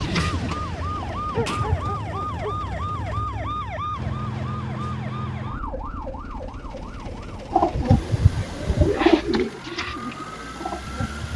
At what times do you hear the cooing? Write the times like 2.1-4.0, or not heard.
0.0-1.9, 7.5-11.3.